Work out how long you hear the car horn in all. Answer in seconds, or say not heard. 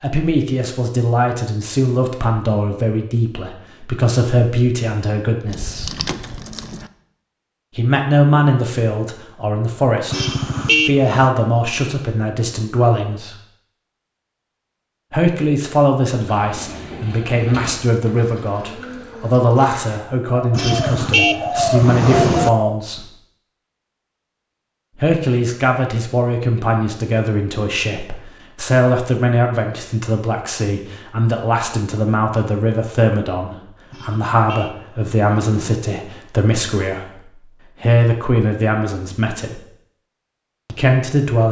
5 s.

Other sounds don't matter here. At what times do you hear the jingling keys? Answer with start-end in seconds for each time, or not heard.
5.5-6.9.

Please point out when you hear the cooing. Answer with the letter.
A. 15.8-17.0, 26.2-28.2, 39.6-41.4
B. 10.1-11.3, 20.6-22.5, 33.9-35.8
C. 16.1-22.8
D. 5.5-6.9
C.